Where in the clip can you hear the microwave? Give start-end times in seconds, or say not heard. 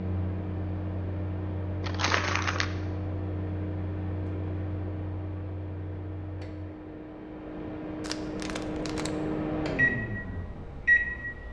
0.0-11.4.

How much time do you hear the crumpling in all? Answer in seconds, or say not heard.
2 s.